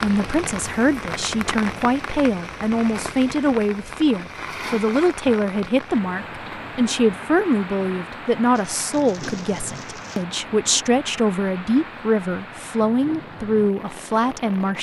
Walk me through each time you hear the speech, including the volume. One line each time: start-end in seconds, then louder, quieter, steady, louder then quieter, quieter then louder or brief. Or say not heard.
0.0-14.7 steady.